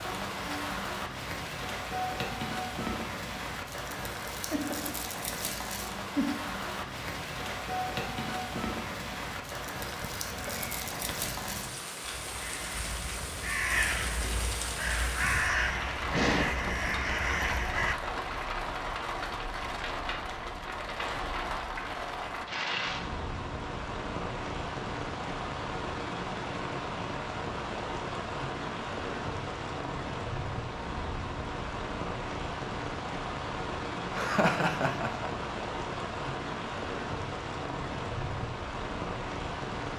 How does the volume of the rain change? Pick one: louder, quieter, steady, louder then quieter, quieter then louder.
steady.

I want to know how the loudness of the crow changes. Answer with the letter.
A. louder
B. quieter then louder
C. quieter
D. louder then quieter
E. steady
A.